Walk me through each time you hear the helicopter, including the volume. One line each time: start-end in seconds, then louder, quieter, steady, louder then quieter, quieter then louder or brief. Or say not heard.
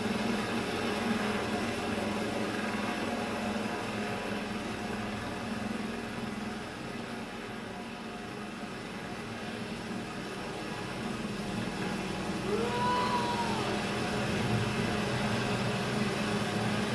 0.0-16.9 quieter then louder.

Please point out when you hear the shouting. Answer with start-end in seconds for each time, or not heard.
12.4-13.6.